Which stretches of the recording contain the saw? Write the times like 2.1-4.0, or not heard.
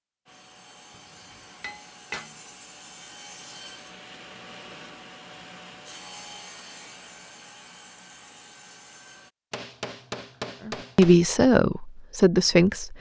0.2-9.3.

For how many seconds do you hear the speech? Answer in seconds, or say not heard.
2 s.